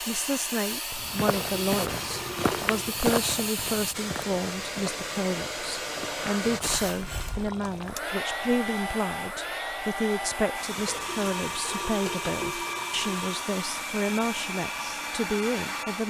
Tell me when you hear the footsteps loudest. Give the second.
3 s.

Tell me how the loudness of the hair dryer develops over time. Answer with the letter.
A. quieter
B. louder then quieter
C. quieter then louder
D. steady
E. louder
D.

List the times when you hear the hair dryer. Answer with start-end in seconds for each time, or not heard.
0.0-16.0.